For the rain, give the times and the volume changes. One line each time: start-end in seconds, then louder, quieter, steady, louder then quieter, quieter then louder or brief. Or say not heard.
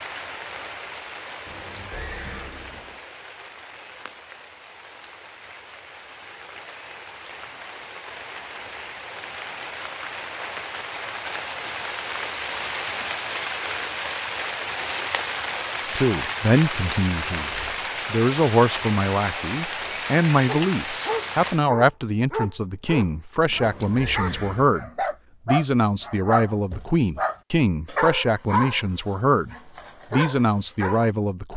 0.0-21.6 louder.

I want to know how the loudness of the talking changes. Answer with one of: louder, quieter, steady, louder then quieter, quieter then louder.
steady.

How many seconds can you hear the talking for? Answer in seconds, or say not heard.
16 s.